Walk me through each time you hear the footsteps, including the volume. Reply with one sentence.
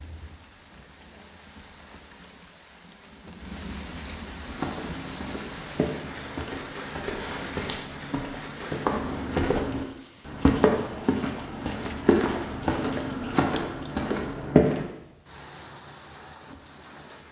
The footsteps can be heard from 4.4 to 14.8 s, getting louder.